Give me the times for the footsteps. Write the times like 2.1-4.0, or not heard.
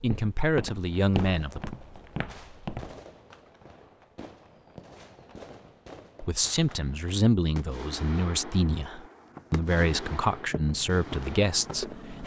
0.0-3.0, 9.2-12.2.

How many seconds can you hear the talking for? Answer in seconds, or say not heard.
8 s.